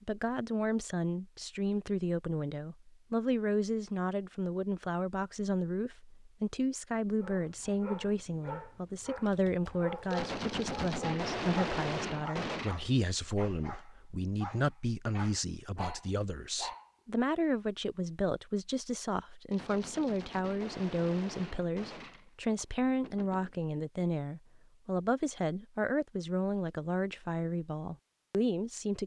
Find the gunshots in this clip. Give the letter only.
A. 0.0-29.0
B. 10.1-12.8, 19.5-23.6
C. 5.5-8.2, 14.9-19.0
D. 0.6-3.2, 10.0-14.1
B.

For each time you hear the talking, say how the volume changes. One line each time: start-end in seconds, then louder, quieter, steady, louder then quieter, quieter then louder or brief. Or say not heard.
0.0-29.0 steady.